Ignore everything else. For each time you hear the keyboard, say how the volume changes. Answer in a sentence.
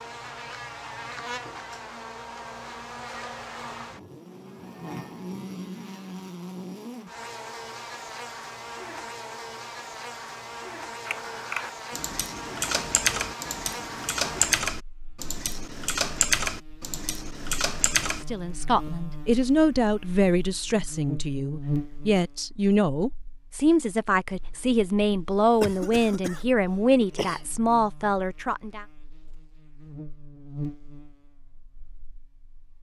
The keyboard can be heard from 11.1 to 18.2 s, getting louder then quieter.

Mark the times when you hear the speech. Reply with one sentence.
You can hear the speech from 18.3 to 28.9 s.